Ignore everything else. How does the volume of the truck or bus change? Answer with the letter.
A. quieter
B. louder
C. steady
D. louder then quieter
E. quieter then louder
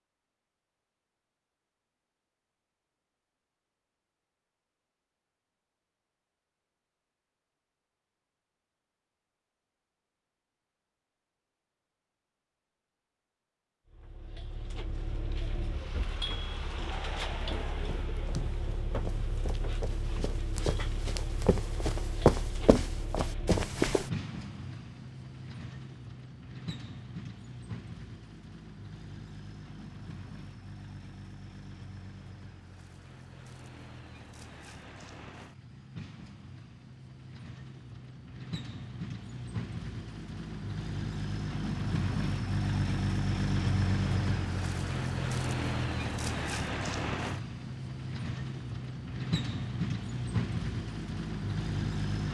E.